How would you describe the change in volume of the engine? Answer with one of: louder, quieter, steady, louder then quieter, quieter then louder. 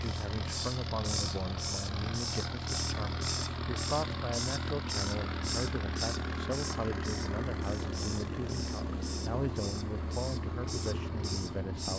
steady.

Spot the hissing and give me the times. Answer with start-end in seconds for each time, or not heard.
0.0-11.9.